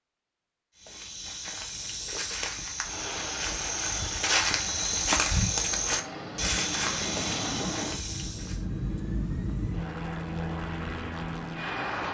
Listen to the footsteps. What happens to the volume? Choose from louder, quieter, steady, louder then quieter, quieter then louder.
louder then quieter.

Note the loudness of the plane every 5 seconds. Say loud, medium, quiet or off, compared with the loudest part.
medium, loud, loud.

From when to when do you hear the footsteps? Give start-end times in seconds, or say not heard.
0.8-8.7.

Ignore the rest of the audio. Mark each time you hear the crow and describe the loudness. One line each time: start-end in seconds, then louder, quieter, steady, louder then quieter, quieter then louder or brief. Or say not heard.
not heard.